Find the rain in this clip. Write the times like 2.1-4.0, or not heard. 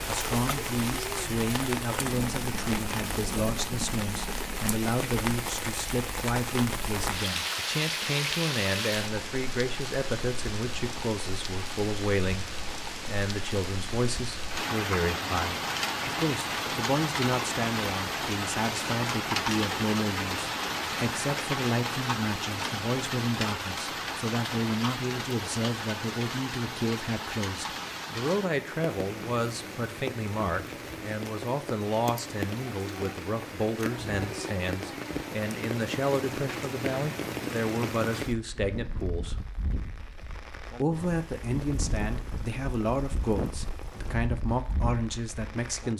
0.0-45.9.